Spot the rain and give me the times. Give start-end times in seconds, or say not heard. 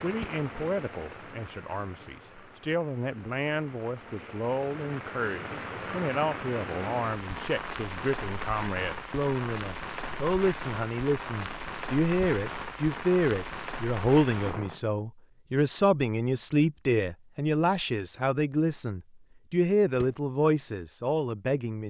0.0-14.8.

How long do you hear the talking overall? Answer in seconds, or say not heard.
22 s.